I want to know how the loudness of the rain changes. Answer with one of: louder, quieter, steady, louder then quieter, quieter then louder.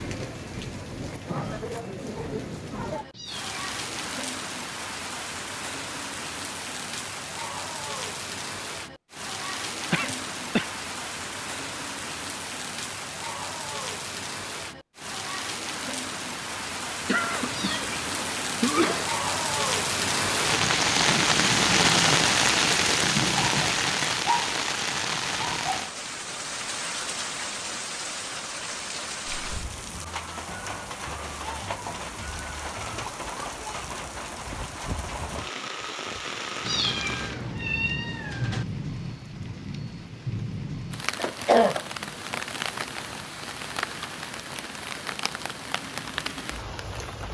louder then quieter.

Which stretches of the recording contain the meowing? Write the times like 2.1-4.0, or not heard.
3.1-4.1, 17.5-18.1, 36.6-38.6.